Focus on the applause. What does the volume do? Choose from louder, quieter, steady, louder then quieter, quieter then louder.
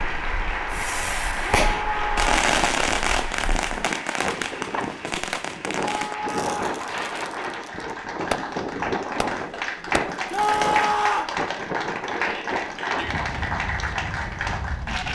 quieter then louder.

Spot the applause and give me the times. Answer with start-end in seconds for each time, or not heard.
0.0-15.1.